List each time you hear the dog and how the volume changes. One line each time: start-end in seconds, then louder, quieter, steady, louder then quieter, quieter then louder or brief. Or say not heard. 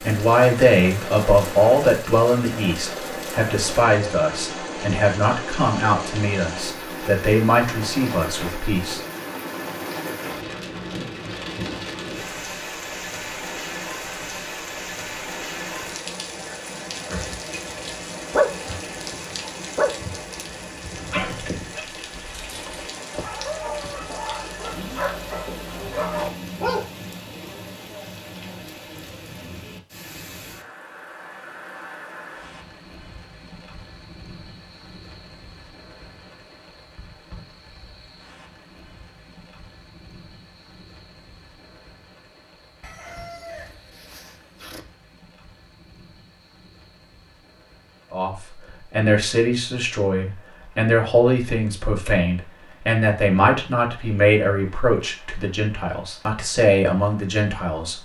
18.3-26.9 quieter then louder.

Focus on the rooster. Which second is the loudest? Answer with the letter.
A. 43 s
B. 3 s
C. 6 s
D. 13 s
A.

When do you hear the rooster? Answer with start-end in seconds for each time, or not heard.
42.8-44.8.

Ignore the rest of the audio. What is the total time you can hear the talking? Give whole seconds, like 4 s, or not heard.
19 s.